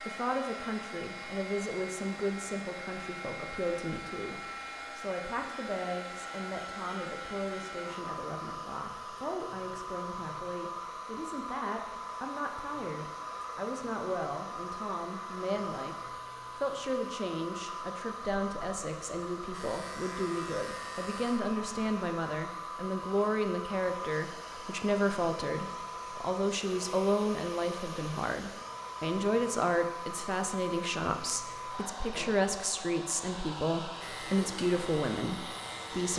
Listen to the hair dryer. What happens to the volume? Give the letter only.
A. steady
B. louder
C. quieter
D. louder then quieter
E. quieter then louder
A.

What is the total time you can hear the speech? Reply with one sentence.
You can hear the speech for 36 seconds altogether.